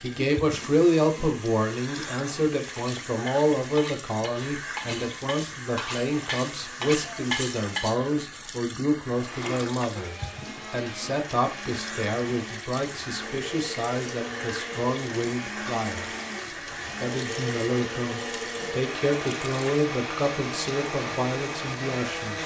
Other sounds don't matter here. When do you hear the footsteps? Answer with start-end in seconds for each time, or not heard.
not heard.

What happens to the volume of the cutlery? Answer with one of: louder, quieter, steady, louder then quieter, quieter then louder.
louder.